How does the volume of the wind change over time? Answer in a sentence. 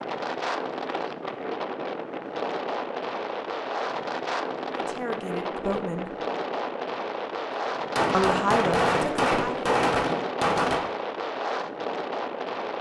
The loudness of the wind stays about the same.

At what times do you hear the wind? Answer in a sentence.
The wind can be heard from 0.0 to 12.7 s.